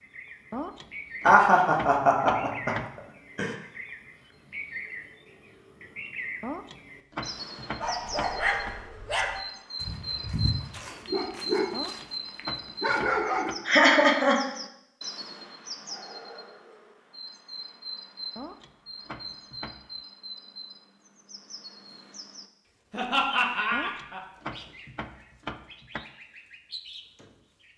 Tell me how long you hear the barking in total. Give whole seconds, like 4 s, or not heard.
6 s.